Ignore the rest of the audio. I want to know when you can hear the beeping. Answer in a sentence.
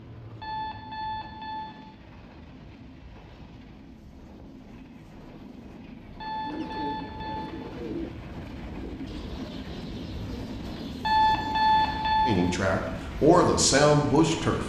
You can hear the beeping from 0.4 to 1.8 s, from 6.2 to 7.5 s and from 11.0 to 12.3 s.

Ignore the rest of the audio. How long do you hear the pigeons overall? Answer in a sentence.
You can hear the pigeons for 6 seconds altogether.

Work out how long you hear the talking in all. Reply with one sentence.
The talking can be heard for 2 seconds in total.